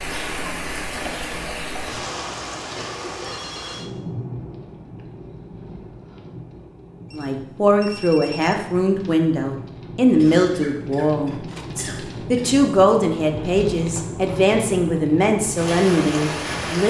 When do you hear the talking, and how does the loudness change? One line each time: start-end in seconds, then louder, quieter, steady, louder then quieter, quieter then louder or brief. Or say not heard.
7.2-16.8 steady.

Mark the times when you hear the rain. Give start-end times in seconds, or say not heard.
0.0-16.8.